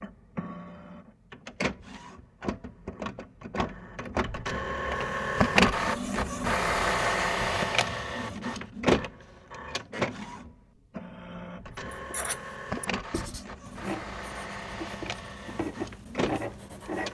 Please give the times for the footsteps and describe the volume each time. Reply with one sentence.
You can't hear the footsteps here.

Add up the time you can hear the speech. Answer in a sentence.
You can't hear the speech here.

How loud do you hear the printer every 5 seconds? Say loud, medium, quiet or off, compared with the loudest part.
medium, loud, medium, medium.